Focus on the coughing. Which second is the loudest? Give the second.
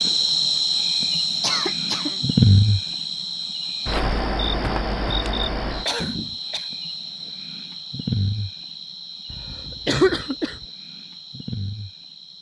10 s.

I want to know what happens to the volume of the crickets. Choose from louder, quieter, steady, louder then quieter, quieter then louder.
quieter.